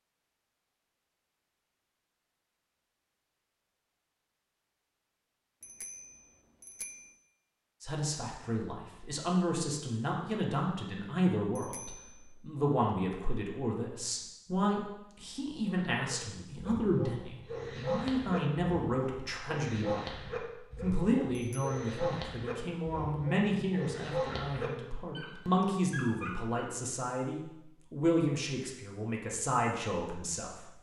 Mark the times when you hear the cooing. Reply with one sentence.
You can't hear the cooing here.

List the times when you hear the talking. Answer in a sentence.
The talking can be heard from 7.8 to 30.6 s.